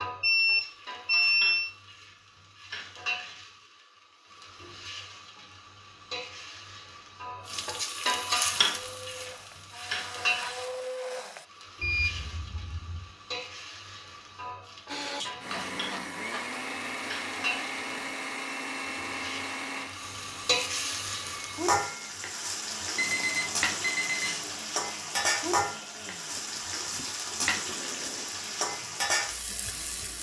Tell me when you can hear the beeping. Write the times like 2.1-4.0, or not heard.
0.2-1.7, 11.8-13.1, 22.9-24.6.